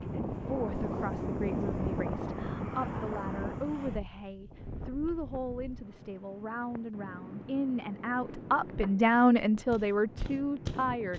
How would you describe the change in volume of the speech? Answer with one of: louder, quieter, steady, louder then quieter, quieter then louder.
louder.